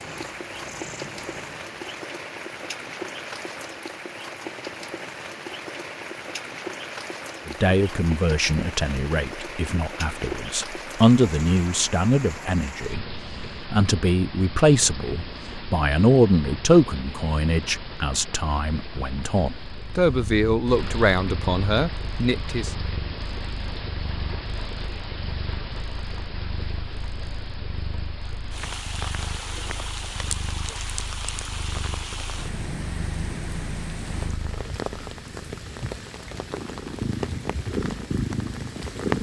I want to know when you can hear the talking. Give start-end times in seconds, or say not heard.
7.5-13.1, 13.7-22.7.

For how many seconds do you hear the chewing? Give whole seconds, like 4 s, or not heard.
not heard.